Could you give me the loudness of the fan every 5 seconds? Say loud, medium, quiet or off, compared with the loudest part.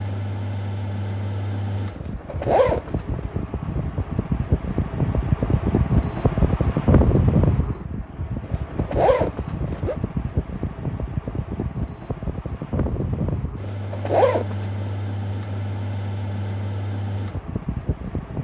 medium, loud, medium, medium.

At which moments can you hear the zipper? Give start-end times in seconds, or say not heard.
1.9-3.2, 8.4-9.9, 13.6-14.9.